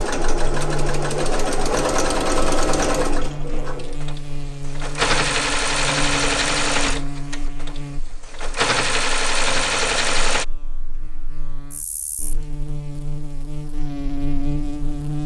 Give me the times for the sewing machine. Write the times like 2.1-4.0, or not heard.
0.0-10.4.